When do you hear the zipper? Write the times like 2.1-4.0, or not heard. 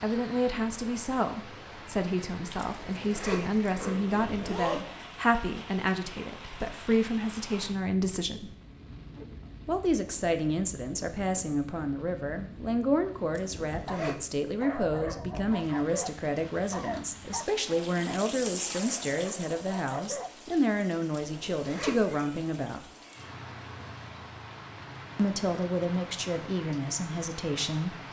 2.5-5.0, 13.3-14.2, 21.1-22.1.